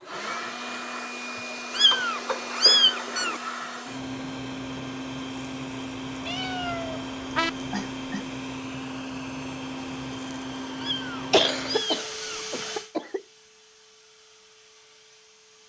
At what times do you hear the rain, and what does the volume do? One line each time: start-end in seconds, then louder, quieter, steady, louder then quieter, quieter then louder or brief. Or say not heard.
not heard.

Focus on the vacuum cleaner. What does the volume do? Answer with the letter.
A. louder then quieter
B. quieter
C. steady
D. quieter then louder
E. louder
B.